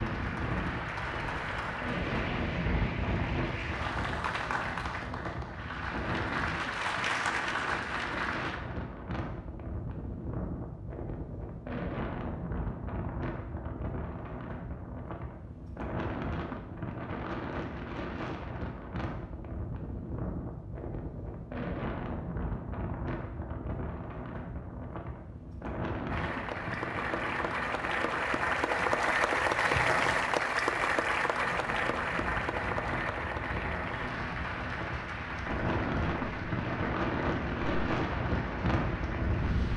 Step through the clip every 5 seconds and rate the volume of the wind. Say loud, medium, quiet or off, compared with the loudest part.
loud, medium, medium, medium, medium, medium, medium, loud.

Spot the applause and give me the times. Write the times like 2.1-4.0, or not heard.
0.0-8.6, 26.1-39.7.